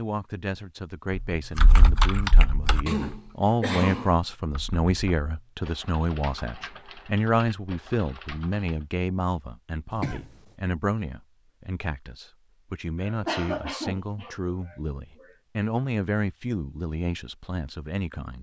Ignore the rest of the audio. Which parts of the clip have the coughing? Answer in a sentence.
The coughing can be heard from 2.9 to 4.2 s, from 9.9 to 10.4 s and from 13.1 to 15.3 s.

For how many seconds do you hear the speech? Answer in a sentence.
The speech can be heard for 18 seconds in total.